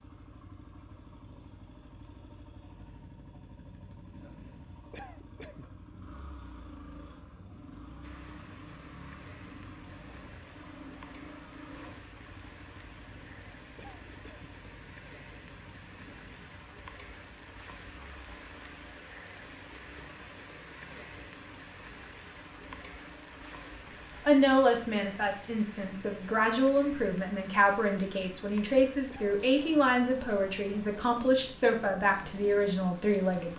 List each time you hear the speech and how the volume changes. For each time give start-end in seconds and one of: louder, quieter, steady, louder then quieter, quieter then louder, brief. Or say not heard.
24.2-33.5 steady.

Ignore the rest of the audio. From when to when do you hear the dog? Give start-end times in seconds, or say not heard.
not heard.